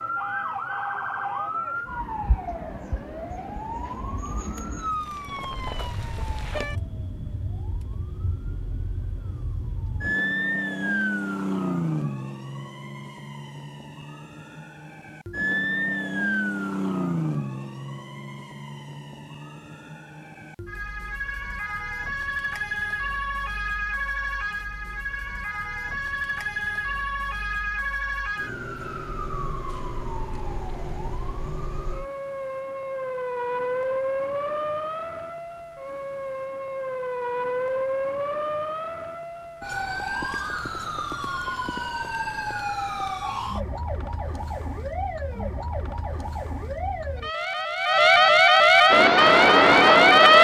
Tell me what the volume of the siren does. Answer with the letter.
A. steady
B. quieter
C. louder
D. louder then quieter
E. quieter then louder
C.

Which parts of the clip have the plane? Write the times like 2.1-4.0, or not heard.
48.9-50.4.